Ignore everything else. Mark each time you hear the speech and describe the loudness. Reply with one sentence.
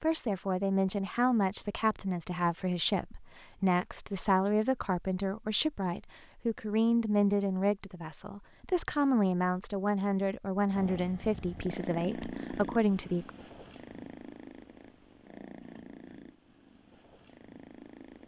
The speech can be heard from 0.0 to 13.3 s, at a steady volume.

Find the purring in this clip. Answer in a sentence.
The purring can be heard from 10.7 to 18.2 s.